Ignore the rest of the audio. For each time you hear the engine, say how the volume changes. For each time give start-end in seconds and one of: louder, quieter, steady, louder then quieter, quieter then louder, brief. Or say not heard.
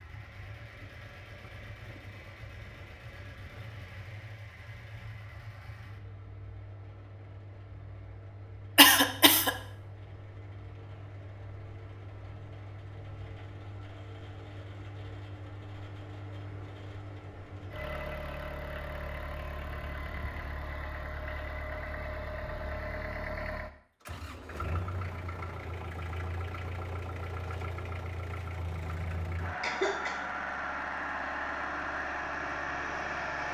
0.0-33.4 louder.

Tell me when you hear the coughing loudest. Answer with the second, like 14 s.
9 s.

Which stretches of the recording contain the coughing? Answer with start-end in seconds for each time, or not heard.
8.8-9.5, 29.6-30.2.